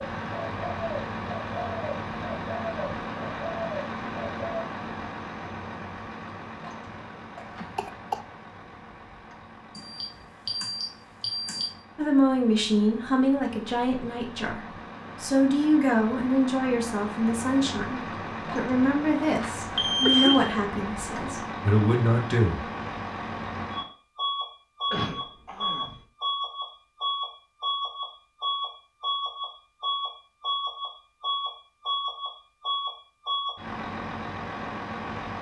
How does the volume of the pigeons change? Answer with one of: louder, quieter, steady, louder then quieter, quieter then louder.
steady.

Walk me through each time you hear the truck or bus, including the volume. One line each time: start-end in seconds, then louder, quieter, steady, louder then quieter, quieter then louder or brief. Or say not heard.
0.0-35.3 quieter then louder.